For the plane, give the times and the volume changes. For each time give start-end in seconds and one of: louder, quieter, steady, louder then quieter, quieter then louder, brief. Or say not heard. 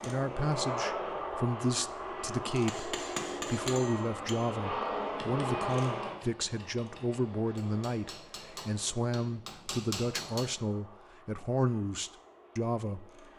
0.0-13.3 quieter.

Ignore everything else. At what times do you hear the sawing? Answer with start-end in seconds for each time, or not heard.
not heard.